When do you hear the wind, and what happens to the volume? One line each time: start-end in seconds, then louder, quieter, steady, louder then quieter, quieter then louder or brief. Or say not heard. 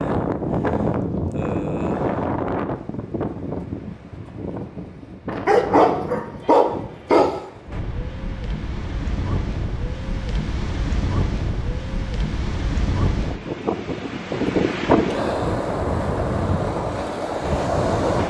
0.0-18.2 quieter then louder.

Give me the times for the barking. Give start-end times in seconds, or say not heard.
5.5-7.3.